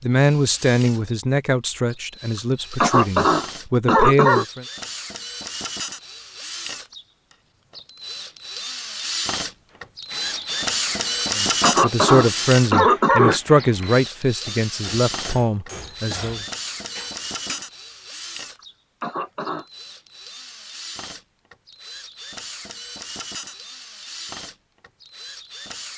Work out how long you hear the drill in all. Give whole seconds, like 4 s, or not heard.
26 s.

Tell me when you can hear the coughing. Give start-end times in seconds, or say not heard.
2.4-4.5, 11.2-13.4, 19.0-19.6.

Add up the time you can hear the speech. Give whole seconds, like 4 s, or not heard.
10 s.